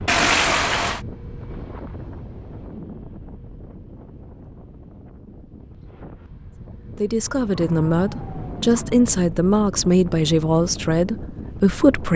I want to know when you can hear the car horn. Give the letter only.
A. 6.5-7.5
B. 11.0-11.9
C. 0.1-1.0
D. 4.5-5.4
C.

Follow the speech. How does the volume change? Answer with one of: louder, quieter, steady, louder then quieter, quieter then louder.
steady.